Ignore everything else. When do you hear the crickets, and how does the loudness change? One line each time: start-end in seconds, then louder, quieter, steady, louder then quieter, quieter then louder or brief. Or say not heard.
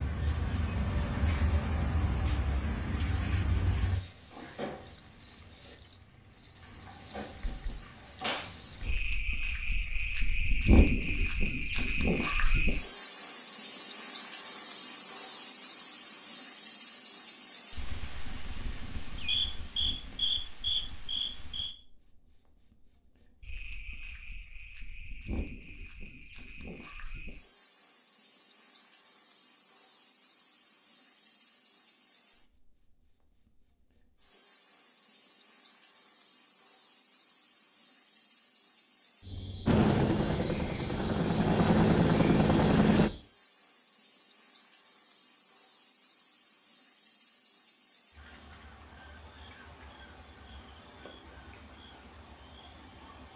0.0-53.3 quieter.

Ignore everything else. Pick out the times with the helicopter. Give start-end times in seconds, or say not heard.
39.6-43.1.